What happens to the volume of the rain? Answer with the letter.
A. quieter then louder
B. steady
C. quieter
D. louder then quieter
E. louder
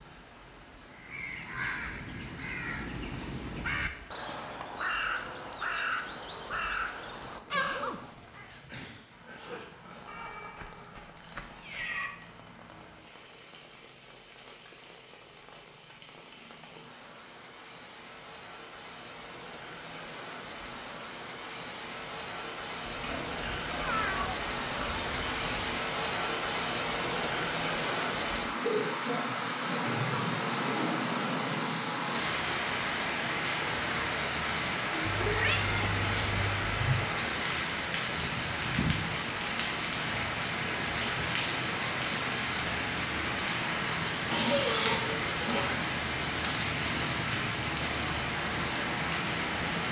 E.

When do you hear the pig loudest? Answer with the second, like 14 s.
45 s.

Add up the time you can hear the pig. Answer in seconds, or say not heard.
6 s.